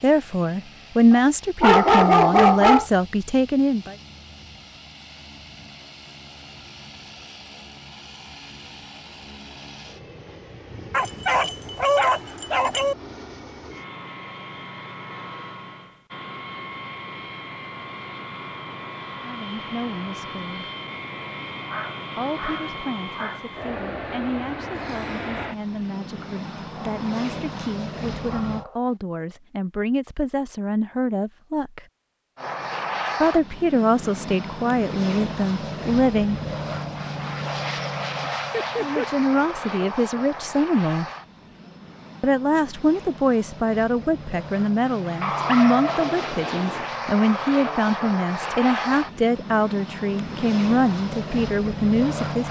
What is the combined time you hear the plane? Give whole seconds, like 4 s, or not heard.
49 s.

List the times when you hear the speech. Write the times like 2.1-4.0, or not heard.
0.0-4.0, 19.2-20.7, 22.1-31.9, 33.2-36.4, 38.8-41.1, 42.2-52.4.